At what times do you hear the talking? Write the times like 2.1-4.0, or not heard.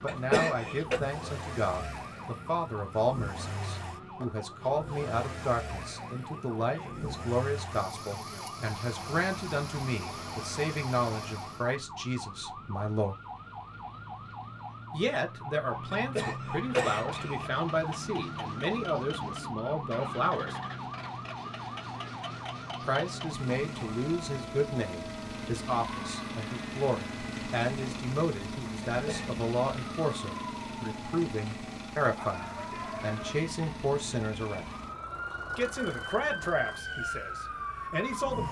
0.0-13.2, 14.9-20.6, 22.8-34.7, 35.5-38.4.